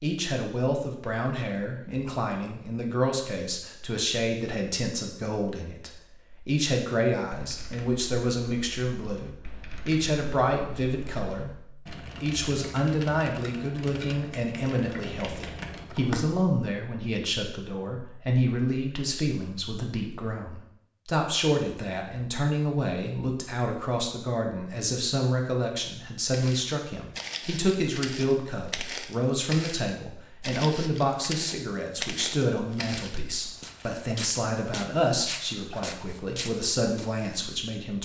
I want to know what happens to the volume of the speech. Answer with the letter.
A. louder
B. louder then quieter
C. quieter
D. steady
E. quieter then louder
D.